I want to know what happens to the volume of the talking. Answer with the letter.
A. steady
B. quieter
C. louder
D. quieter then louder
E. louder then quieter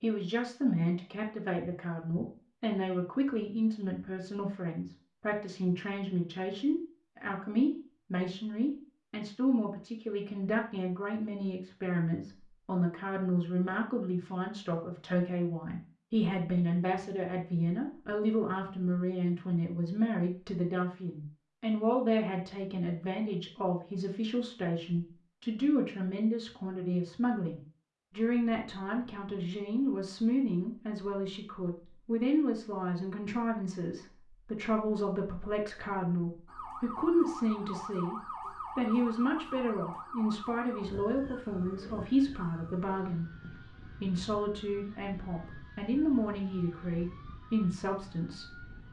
A.